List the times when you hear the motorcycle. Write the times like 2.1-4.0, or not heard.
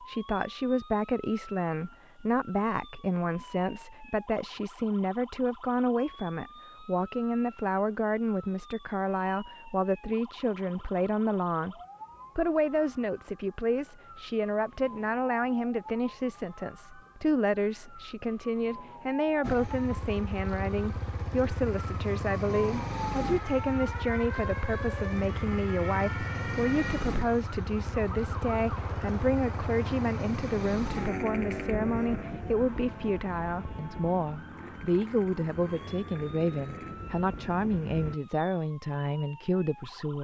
19.4-38.1.